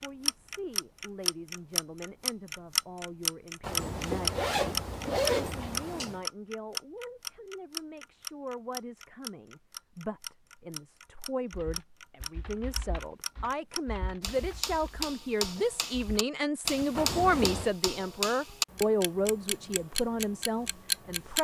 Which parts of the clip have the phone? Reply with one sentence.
The phone can't be heard in this clip.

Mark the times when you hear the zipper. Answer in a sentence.
The zipper can be heard from 3.6 to 6.2 s and from 16.9 to 17.7 s.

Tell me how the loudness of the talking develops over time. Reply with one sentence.
The loudness of the talking goes up.